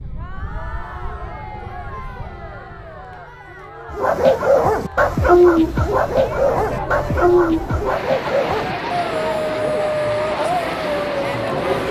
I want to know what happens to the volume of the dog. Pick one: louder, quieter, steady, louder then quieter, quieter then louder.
quieter.